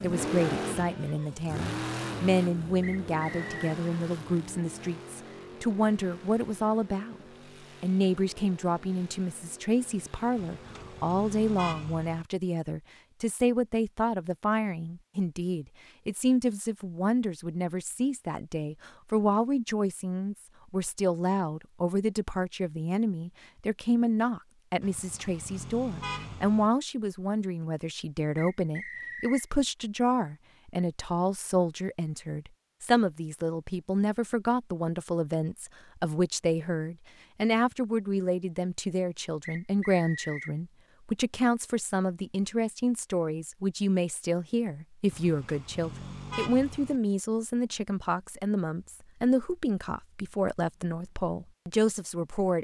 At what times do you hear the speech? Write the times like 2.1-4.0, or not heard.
0.0-7.2, 7.8-52.5.